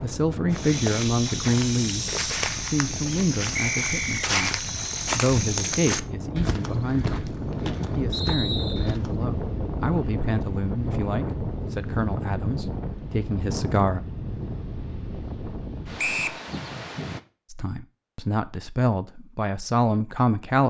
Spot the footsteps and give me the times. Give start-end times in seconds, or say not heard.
0.5-9.2.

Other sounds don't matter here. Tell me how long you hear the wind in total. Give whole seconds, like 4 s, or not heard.
17 s.